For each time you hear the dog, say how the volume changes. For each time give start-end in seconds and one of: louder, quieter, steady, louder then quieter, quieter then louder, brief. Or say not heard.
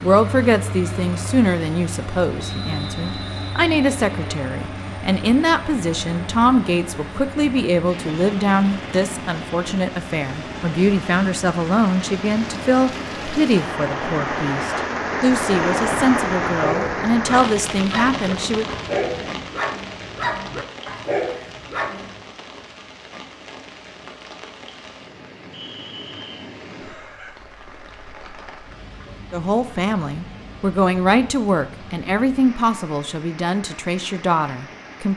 16.5-22.1 steady.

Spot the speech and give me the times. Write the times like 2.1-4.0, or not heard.
0.0-18.6, 29.3-35.1.